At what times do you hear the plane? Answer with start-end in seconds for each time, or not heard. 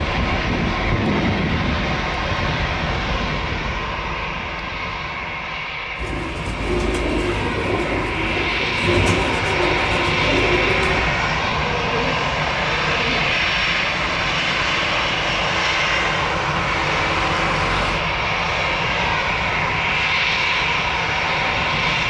0.0-22.0.